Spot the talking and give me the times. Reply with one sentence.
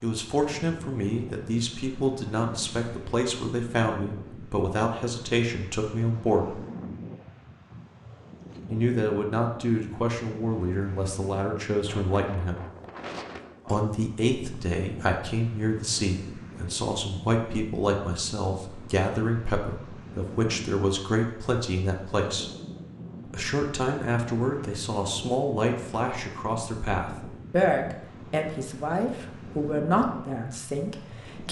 You can hear the talking from 0.0 to 6.6 s, from 8.7 to 12.6 s, from 13.7 to 22.5 s and from 23.3 to 31.4 s.